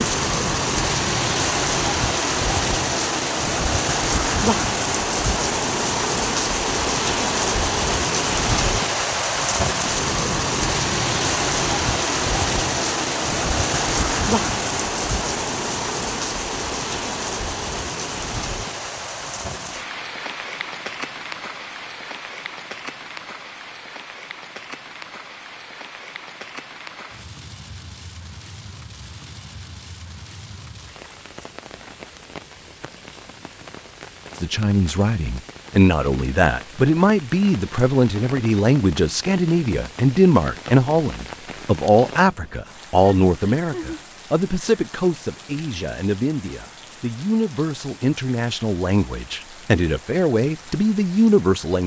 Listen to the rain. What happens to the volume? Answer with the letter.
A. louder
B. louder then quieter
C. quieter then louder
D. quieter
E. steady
D.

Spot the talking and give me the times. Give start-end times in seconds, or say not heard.
34.4-51.8.